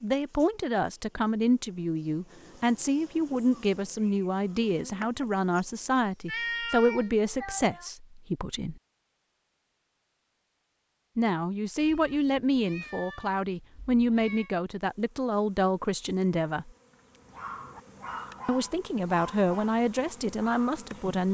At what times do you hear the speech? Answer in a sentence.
You can hear the speech from 0.0 to 8.8 s, from 11.2 to 16.7 s and from 18.4 to 21.3 s.